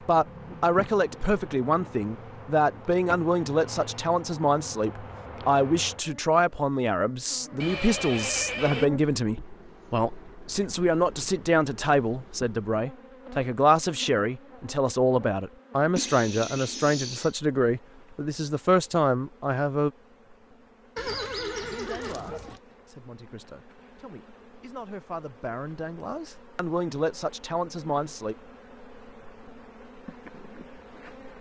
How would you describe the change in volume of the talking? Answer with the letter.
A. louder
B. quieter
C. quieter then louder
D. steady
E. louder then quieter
B.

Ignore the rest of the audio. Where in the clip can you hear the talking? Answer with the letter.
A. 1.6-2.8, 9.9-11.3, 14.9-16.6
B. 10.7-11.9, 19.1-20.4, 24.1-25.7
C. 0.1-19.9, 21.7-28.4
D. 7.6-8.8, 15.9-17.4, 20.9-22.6
C.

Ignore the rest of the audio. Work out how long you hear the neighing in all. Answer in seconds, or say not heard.
4 s.